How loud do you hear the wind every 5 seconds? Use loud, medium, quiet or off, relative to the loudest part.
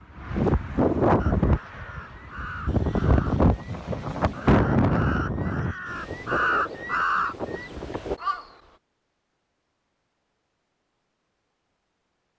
loud, medium, off.